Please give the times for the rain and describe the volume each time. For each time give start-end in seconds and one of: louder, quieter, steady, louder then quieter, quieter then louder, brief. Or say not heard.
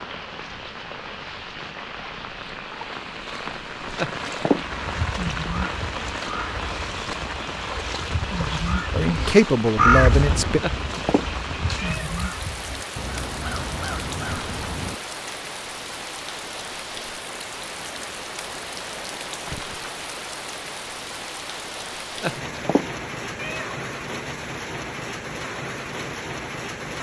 0.0-26.9 steady.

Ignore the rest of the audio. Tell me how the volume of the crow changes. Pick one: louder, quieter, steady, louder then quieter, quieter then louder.
louder then quieter.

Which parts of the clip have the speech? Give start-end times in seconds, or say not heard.
8.9-10.6.